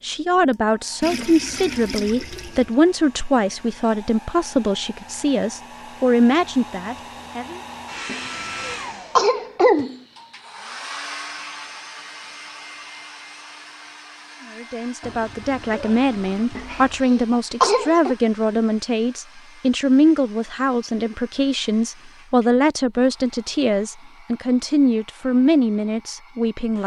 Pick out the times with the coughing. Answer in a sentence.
The coughing can be heard from 8.1 to 9.9 s and from 16.6 to 18.1 s.